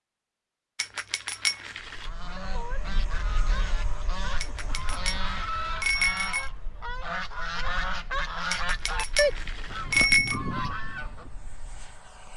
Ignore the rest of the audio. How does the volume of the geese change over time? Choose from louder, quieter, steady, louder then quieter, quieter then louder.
louder.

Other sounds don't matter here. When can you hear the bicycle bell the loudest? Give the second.
10 s.